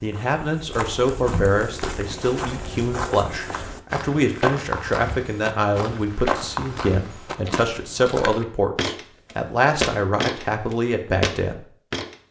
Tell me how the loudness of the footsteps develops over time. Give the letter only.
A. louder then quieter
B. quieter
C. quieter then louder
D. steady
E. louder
E.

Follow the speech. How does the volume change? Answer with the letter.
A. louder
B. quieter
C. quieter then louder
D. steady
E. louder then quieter
D.